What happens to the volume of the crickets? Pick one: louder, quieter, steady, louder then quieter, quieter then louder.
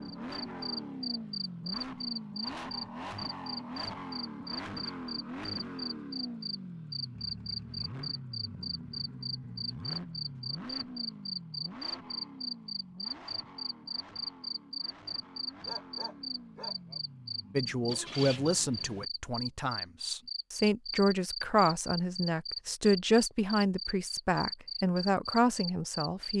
steady.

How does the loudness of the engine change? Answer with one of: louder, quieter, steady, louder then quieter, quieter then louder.
quieter.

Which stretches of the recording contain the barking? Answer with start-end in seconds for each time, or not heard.
15.7-17.0.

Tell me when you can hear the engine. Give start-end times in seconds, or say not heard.
0.0-19.1.